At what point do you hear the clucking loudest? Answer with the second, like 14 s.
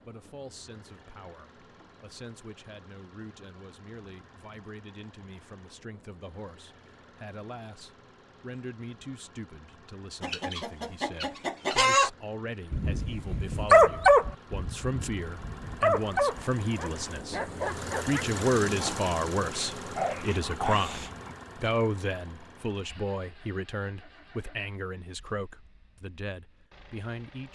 12 s.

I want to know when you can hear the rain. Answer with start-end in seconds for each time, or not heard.
not heard.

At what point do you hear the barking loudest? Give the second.
14 s.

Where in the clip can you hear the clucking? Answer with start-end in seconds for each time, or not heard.
10.2-12.1.